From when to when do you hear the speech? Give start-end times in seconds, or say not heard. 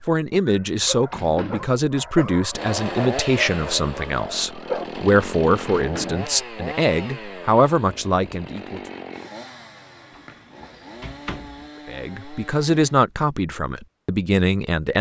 0.1-8.8, 11.8-14.9.